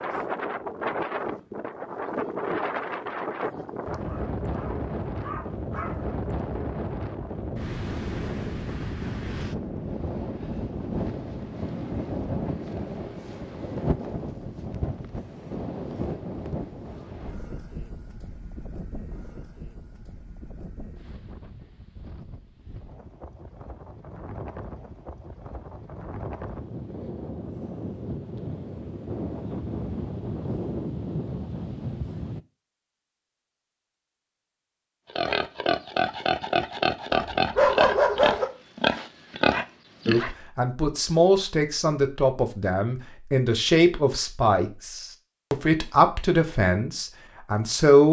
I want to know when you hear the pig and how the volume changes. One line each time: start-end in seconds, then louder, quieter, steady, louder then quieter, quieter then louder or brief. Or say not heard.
35.1-40.4 steady.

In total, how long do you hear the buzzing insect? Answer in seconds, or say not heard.
not heard.